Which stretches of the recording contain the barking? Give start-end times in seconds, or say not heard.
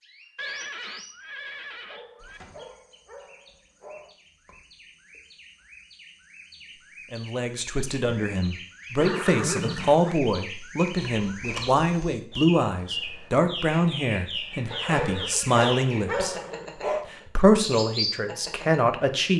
1.7-4.2, 14.7-17.1.